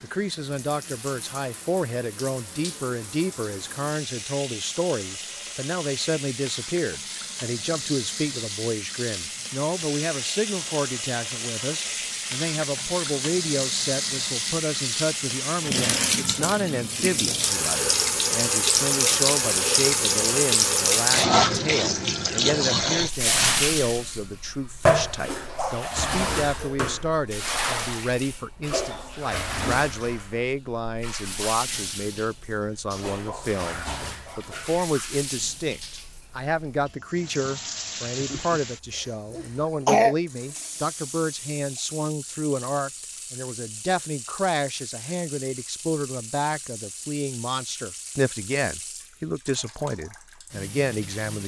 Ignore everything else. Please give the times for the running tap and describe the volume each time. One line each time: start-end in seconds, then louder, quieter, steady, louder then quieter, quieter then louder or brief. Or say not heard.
0.0-51.4 louder then quieter.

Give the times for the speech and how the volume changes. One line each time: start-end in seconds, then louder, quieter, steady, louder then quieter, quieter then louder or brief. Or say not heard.
0.0-51.4 steady.